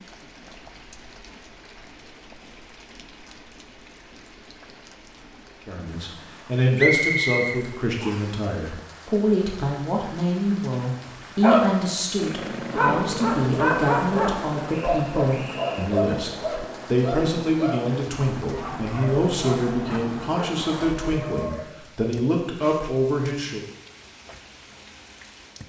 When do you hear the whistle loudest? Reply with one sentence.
The volume of the whistle peaks at 7 seconds.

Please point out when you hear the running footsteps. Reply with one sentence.
The running footsteps can't be heard in this clip.